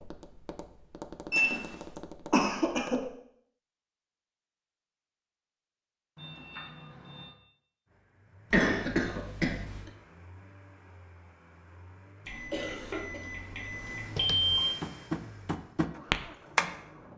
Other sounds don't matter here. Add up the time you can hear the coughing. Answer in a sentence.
You can hear the coughing for 3 seconds altogether.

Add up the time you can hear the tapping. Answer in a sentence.
You can hear the tapping for 6 seconds altogether.